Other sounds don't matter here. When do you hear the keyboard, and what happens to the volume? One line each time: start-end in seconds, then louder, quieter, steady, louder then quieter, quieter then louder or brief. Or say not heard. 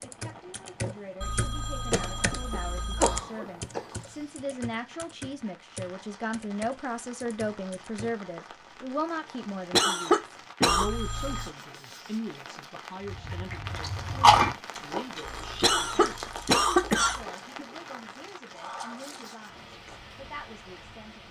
0.0-8.2 quieter.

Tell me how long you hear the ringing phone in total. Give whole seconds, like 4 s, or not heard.
5 s.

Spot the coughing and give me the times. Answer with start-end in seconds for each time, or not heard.
1.9-4.0, 9.7-10.9, 15.6-17.6.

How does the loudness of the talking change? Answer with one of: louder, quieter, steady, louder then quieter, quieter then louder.
louder then quieter.